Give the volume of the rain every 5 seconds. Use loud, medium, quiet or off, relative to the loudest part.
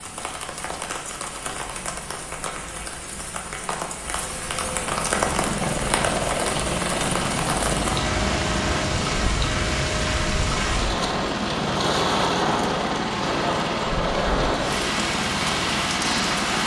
medium, loud, loud, loud.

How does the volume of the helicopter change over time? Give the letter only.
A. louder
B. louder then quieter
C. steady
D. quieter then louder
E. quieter
C.